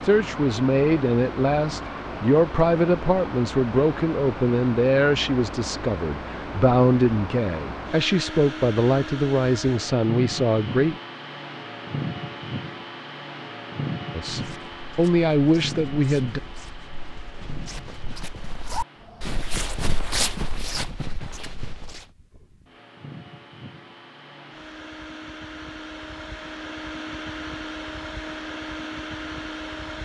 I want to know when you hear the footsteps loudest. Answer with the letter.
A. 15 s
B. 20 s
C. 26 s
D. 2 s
B.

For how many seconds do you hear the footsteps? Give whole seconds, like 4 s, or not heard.
8 s.